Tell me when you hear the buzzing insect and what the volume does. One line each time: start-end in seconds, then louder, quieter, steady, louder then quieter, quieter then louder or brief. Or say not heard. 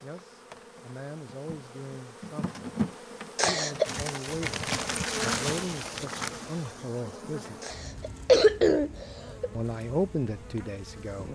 0.0-11.3 louder then quieter.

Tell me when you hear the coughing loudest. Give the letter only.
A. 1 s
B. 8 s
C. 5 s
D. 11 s
B.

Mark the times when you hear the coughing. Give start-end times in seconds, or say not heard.
3.4-3.9, 7.6-9.5.